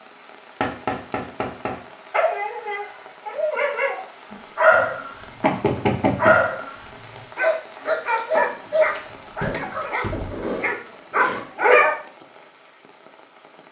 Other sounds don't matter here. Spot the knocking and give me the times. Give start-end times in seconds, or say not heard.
0.6-1.8, 5.4-6.4, 10.1-10.5.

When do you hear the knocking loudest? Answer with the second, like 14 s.
6 s.